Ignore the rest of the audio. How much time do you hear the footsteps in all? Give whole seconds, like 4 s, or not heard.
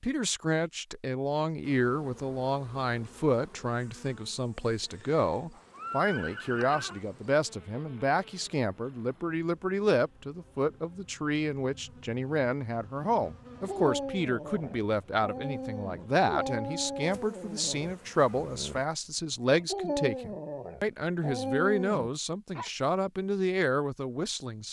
not heard.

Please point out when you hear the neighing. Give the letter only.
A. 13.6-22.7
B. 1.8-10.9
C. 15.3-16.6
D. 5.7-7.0
D.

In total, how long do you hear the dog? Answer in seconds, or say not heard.
9 s.